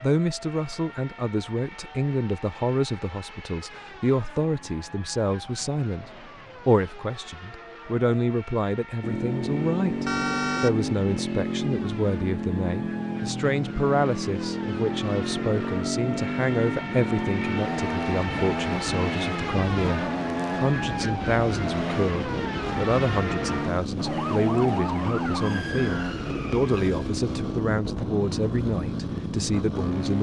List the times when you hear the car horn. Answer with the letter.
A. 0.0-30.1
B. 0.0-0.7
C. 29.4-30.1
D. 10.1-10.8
D.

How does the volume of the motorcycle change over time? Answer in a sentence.
The loudness of the motorcycle stays about the same.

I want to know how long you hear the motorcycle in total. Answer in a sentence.
You can hear the motorcycle for 21 seconds altogether.